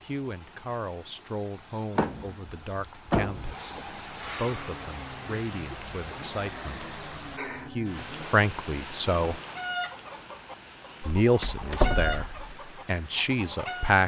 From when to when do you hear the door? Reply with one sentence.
You can hear the door from 1.9 to 3.5 s and from 11.2 to 12.3 s.